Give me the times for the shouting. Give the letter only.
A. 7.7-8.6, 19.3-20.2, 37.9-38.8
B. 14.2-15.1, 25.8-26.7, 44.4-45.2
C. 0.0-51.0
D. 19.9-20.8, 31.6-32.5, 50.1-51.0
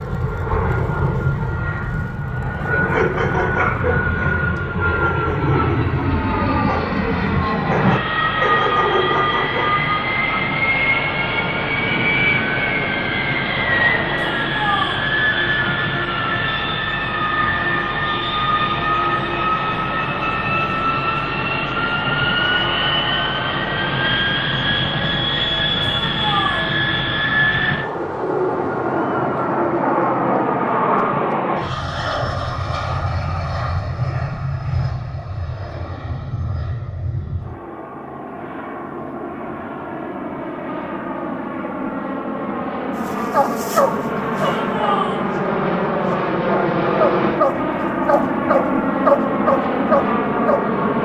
B.